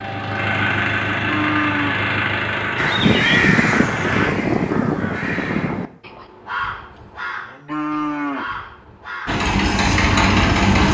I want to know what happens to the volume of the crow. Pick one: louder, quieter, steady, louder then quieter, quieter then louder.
quieter.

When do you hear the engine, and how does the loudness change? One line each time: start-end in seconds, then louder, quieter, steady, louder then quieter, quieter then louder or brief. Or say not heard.
0.0-4.3 quieter
9.2-10.8 brief.